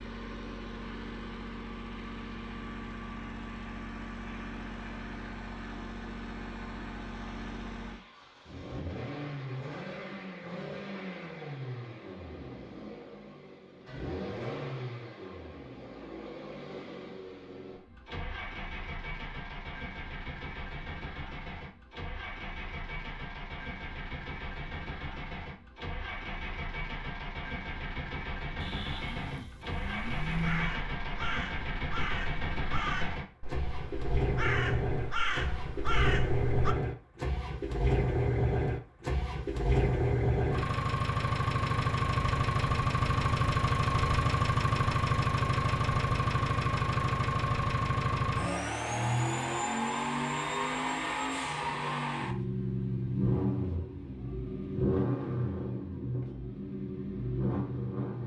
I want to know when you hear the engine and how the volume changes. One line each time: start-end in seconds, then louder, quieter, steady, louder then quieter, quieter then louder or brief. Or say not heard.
0.0-58.2 louder.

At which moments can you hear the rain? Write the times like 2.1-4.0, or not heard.
not heard.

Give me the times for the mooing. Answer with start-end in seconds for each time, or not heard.
28.6-30.8.